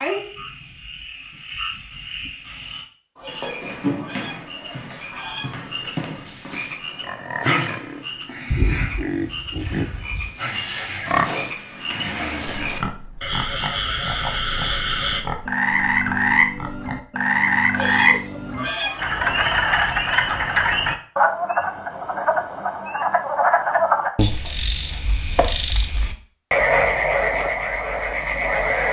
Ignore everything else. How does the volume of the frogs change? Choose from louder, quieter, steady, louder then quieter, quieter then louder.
louder.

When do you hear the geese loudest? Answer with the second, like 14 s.
19 s.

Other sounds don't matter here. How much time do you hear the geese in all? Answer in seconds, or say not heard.
4 s.